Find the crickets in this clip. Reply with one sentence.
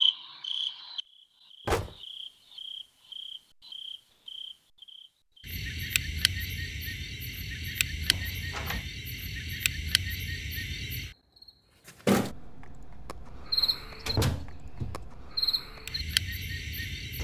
You can hear the crickets from 0.0 to 17.1 s.